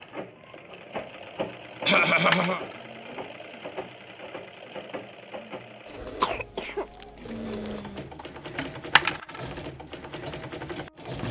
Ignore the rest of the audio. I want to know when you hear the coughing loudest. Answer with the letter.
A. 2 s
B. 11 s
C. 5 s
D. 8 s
A.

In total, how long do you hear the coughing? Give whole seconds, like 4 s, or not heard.
3 s.